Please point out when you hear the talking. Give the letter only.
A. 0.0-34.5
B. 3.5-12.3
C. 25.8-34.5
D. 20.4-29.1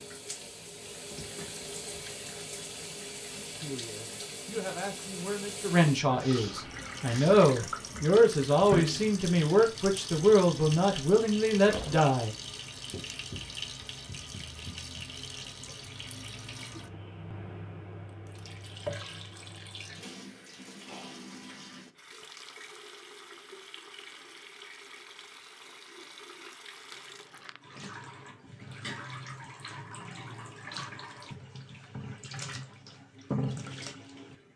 B.